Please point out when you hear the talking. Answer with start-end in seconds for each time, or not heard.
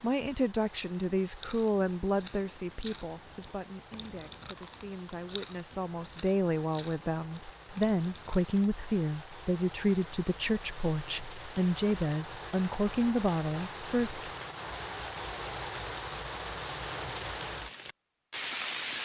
0.0-14.3.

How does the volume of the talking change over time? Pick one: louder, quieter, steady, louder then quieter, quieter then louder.
quieter then louder.